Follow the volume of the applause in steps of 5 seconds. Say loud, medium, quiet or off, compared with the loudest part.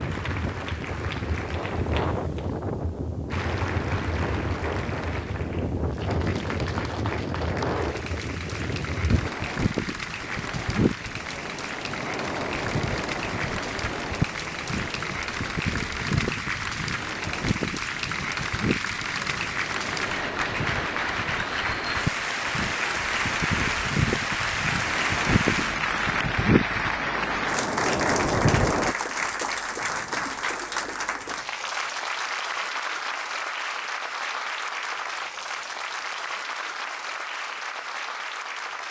medium, medium, medium, loud, loud, loud, loud, medium.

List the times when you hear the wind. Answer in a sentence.
You can hear the wind from 0.0 to 28.9 s.